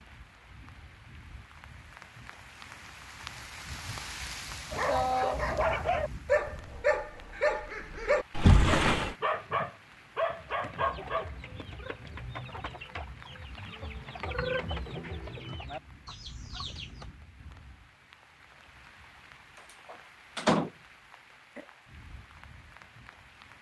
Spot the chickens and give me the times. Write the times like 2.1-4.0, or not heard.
10.3-17.1.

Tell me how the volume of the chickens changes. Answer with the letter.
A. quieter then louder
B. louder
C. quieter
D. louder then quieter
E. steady
D.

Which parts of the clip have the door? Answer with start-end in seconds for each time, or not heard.
8.3-9.2, 19.9-20.7.